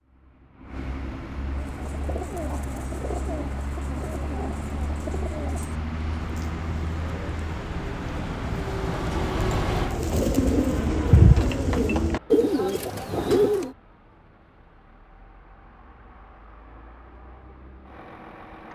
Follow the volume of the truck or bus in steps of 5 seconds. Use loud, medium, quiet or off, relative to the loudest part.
medium, loud, medium, quiet.